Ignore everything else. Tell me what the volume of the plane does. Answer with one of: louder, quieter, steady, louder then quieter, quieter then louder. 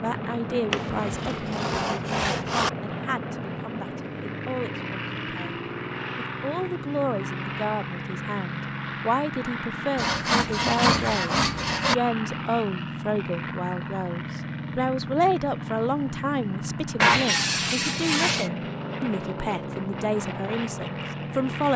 steady.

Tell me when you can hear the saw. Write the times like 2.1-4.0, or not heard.
0.7-2.7, 9.9-11.9, 16.9-18.5.